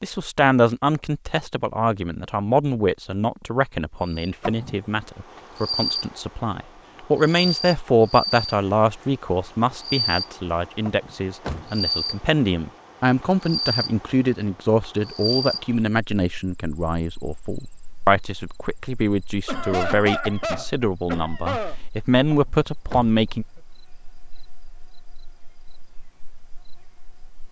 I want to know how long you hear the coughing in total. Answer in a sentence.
The coughing can be heard for 2 seconds in total.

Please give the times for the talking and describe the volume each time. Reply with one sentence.
The talking can be heard from 0.0 to 23.4 s, at a steady volume.